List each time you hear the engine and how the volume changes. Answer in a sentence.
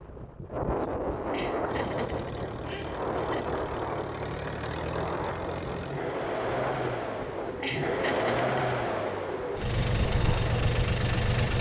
The engine can be heard from 1.6 to 11.5 s, getting louder.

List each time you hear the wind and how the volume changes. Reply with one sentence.
The wind can be heard from 0.0 to 11.5 s, getting quieter.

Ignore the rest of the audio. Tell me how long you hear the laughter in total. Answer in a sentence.
The laughter can be heard for 3 seconds in total.